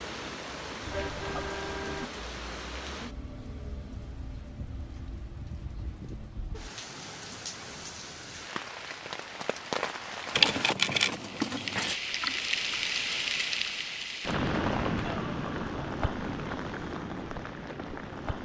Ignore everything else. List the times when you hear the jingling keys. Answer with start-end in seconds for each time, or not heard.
10.3-11.9.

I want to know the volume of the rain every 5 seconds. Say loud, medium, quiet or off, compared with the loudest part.
medium, medium, loud, loud.